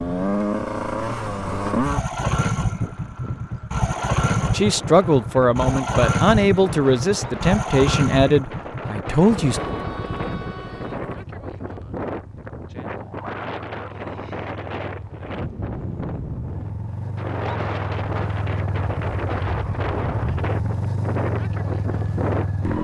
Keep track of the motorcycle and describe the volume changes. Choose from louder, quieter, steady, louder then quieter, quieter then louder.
quieter then louder.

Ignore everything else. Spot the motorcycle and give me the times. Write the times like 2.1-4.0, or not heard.
0.0-22.7.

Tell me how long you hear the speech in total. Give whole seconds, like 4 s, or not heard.
5 s.